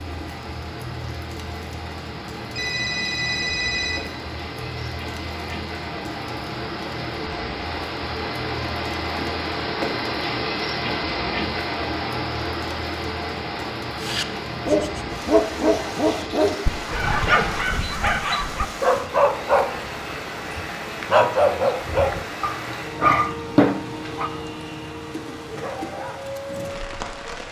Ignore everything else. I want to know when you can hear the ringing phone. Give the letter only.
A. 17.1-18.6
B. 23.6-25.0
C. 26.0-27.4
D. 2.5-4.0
D.